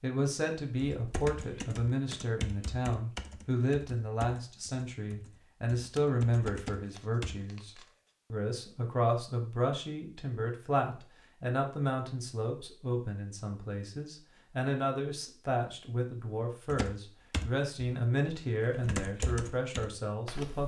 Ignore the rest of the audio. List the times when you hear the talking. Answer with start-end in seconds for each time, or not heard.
0.0-7.7, 8.3-20.6.